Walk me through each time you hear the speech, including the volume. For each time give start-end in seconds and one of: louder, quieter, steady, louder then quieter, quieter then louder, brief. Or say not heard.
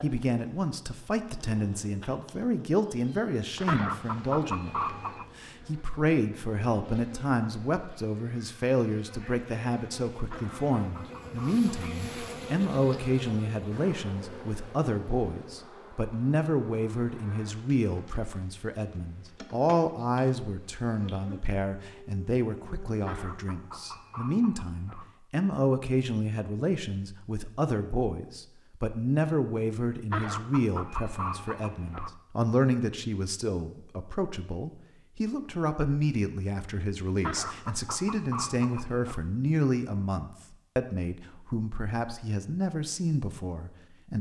0.0-44.1 steady.